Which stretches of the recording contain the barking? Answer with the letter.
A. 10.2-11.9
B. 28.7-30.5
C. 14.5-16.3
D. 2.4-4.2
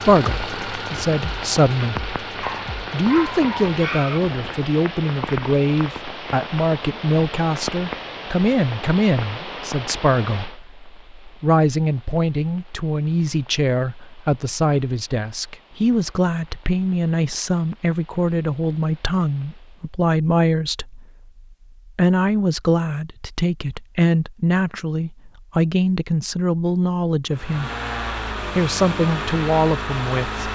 D.